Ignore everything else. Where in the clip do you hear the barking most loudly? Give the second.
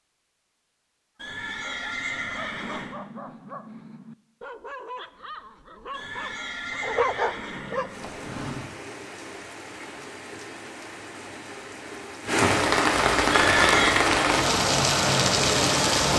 7 s.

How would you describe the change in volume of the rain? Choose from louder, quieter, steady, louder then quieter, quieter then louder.
louder.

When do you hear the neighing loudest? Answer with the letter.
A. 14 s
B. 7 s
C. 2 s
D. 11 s
A.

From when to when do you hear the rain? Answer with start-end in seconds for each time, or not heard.
7.8-16.1.